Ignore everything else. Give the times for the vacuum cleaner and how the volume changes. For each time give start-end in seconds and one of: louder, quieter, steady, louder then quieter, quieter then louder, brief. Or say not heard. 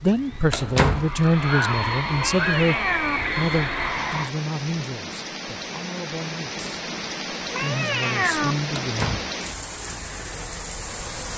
0.0-4.3 louder.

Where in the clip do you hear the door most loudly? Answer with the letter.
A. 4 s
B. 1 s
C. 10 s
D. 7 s
B.